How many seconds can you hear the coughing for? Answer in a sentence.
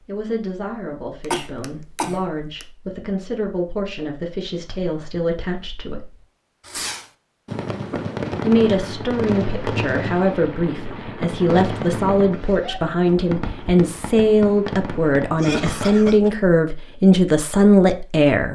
The coughing can be heard for 2 seconds in total.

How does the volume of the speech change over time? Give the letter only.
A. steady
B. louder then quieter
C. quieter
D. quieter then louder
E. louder
E.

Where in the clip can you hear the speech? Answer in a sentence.
You can hear the speech from 0.0 to 6.1 s and from 8.4 to 18.5 s.